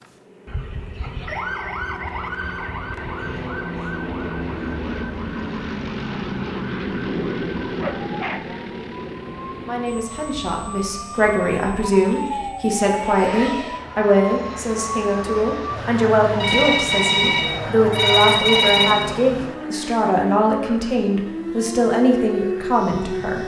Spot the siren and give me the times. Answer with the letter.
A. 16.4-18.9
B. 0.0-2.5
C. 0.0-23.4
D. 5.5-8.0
C.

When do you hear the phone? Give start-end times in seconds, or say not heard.
16.4-18.9.